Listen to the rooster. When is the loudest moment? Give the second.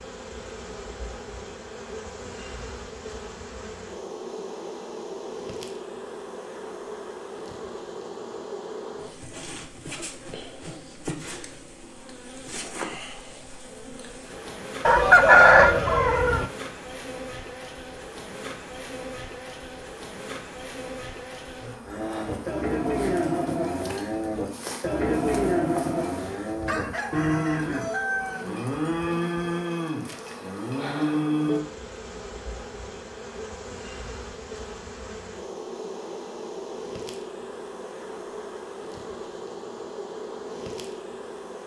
15 s.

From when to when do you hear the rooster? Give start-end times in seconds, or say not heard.
14.8-16.4, 26.6-28.4.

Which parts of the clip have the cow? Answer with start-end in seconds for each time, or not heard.
21.9-31.6.